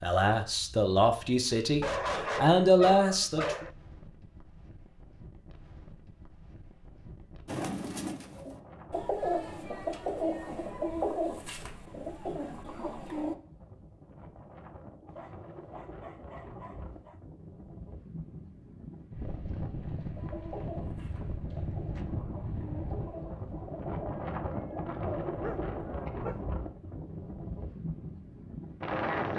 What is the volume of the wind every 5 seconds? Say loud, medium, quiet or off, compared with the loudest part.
quiet, quiet, quiet, medium, loud, loud.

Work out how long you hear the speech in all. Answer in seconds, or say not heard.
4 s.